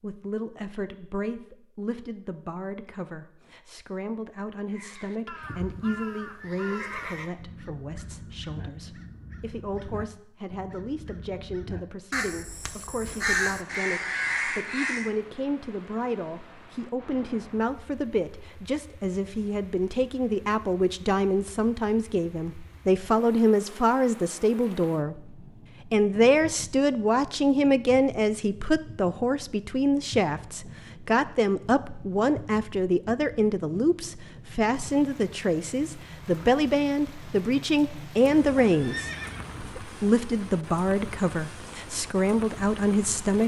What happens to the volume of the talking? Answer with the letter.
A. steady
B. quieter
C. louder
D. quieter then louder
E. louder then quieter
C.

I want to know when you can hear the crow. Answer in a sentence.
The crow can be heard from 4.7 to 15.1 s.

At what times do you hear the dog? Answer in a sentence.
The dog can't be heard in this clip.